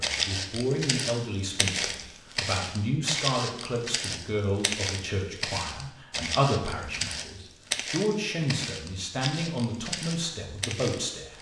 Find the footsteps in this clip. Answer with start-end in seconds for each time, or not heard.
0.0-11.3.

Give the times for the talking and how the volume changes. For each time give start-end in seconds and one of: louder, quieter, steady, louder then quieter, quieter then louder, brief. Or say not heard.
0.0-11.3 steady.